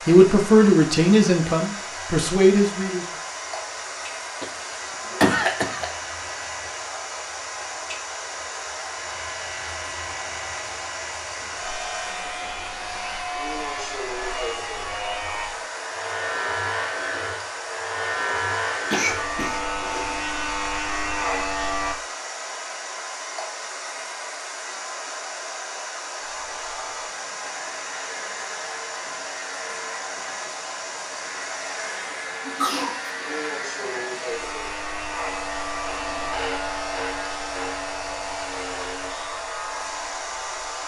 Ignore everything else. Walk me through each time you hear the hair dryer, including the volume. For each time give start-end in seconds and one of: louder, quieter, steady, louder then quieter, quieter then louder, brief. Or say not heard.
0.0-40.8 steady.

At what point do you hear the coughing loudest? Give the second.
5 s.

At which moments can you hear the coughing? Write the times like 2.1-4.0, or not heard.
4.4-5.9, 18.9-20.1, 32.4-33.1.